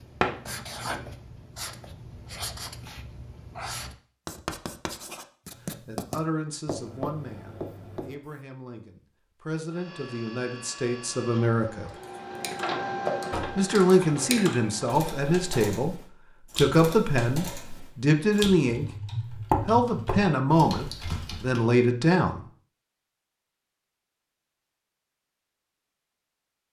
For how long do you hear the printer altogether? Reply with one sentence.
You can hear the printer for 6 seconds altogether.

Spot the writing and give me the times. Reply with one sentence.
You can hear the writing from 0.0 to 8.2 s.